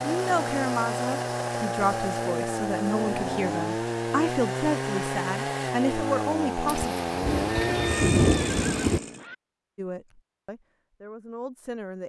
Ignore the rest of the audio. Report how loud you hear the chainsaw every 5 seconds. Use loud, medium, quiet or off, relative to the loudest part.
loud, loud, off.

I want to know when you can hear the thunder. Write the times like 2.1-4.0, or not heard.
6.7-9.0.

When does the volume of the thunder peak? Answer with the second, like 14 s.
8 s.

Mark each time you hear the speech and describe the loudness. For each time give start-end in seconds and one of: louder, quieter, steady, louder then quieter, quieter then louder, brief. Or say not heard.
0.1-7.0 steady
9.8-12.0 brief.